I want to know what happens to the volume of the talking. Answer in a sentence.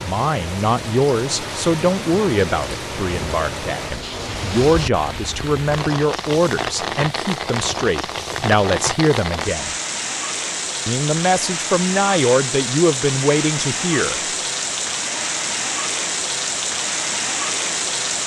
The volume of the talking stays about the same.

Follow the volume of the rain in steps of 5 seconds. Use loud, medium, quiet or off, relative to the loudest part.
medium, loud, loud, loud.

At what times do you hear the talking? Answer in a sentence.
The talking can be heard from 0.0 to 9.8 s and from 10.8 to 14.2 s.